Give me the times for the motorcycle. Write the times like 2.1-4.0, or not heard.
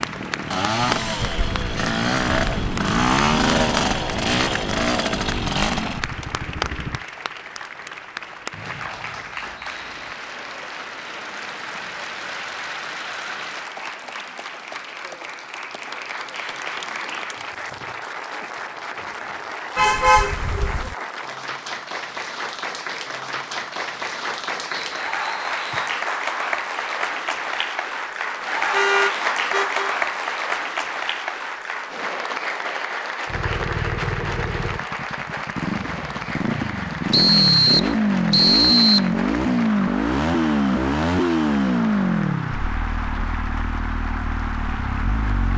0.0-7.0, 33.2-45.5.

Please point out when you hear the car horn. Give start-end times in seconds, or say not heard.
19.8-20.9, 28.7-29.9.